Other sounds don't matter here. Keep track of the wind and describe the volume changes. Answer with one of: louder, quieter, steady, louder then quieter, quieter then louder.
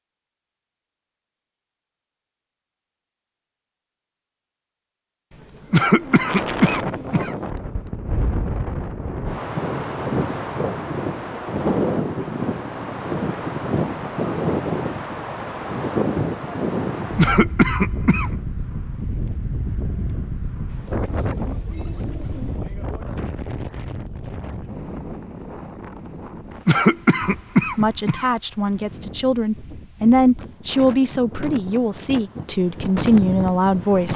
quieter.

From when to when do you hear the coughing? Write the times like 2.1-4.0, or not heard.
5.7-7.3, 17.1-18.4, 26.6-28.2.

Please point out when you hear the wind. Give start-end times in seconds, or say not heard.
6.0-34.1.